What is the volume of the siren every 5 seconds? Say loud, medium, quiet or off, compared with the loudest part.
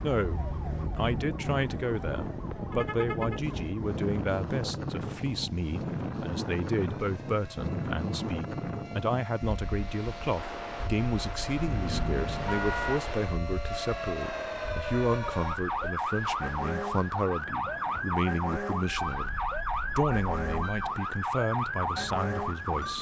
medium, quiet, medium, loud, loud.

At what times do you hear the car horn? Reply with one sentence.
You can hear the car horn from 2.7 to 3.4 s, from 11.6 to 13.0 s and from 18.9 to 20.9 s.